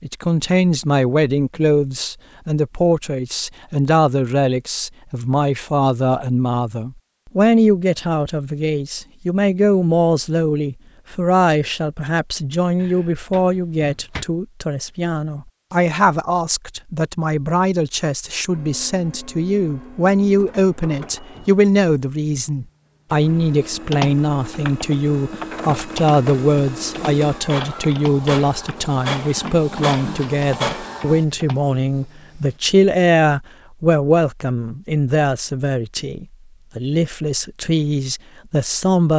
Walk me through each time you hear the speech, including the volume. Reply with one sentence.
The speech can be heard from 0.0 to 39.1 s, at a steady volume.